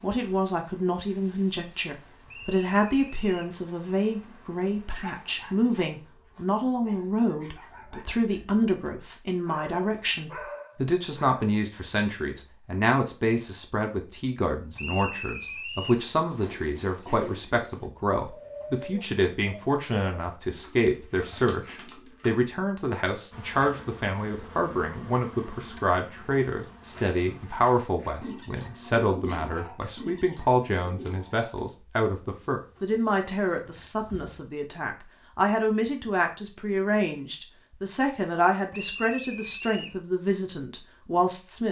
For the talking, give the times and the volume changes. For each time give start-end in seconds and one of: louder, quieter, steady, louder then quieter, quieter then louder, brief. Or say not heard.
0.0-41.6 steady.